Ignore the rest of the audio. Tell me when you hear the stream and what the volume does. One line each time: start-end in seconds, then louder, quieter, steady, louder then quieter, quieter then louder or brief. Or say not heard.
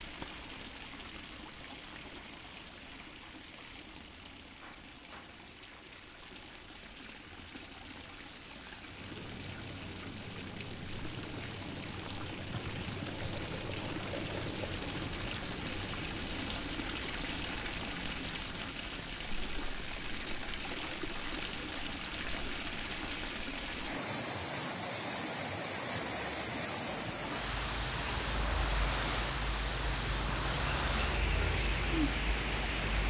0.0-33.0 louder.